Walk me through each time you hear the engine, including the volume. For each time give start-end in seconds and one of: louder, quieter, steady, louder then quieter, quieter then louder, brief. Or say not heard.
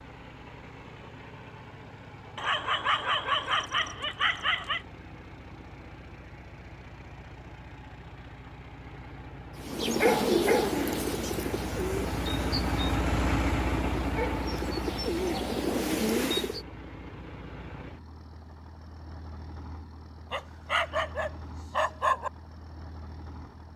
0.0-23.7 louder then quieter.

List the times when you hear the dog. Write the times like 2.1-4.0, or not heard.
2.4-4.8, 20.3-22.3.